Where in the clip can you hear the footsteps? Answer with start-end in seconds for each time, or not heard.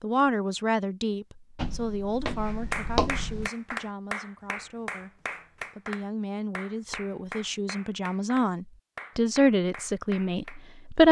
1.6-3.5.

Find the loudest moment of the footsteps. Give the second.
3 s.